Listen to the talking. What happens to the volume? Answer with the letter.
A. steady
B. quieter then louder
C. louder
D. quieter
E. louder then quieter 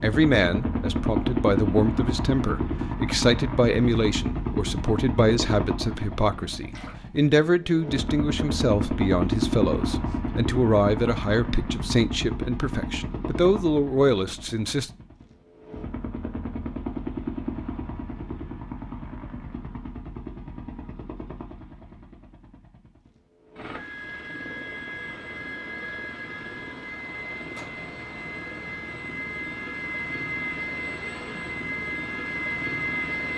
A.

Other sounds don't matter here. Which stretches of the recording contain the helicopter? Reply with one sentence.
You can hear the helicopter from 0.0 to 33.3 s.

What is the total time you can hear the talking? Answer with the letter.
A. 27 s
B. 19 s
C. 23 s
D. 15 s
D.